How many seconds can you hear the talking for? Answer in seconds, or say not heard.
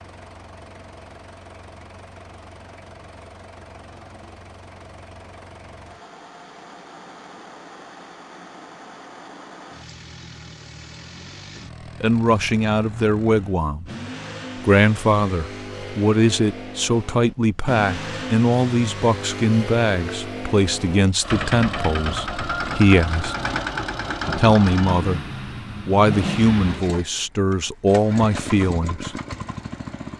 15 s.